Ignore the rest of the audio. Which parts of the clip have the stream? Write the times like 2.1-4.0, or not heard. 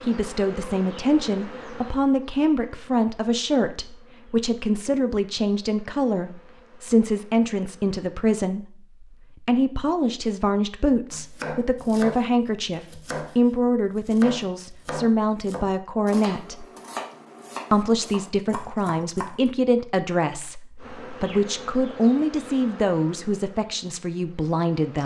not heard.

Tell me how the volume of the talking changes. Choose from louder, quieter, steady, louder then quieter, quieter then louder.
steady.